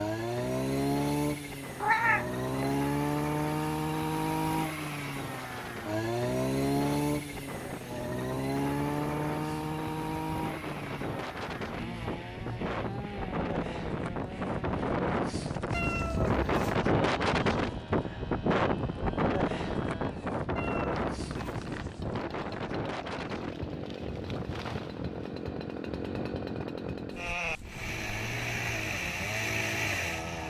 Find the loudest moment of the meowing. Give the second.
2 s.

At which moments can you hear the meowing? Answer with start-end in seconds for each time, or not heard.
1.8-2.8, 15.7-16.8, 20.6-21.7.